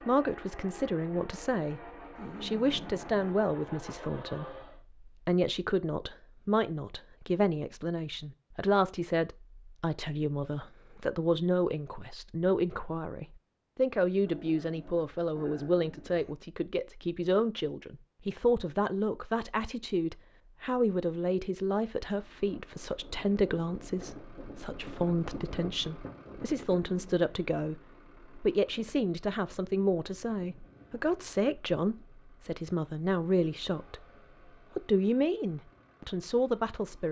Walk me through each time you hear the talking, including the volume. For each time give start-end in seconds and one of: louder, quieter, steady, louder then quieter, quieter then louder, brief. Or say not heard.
0.1-1.8 brief
2.4-34.0 steady
34.8-37.0 brief.